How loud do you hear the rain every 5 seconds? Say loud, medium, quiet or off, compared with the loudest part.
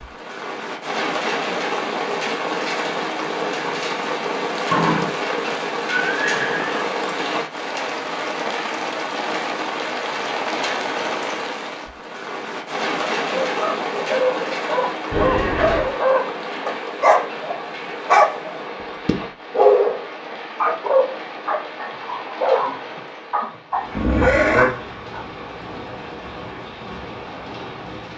loud, loud, loud, medium, medium, medium.